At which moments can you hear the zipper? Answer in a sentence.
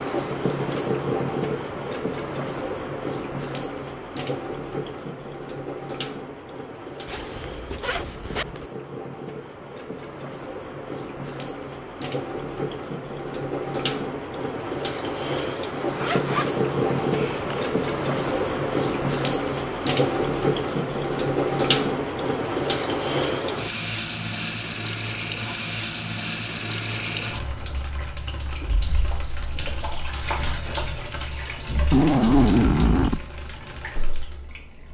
The zipper can be heard from 7.0 to 8.7 s, from 15.9 to 17.4 s and from 31.9 to 33.2 s.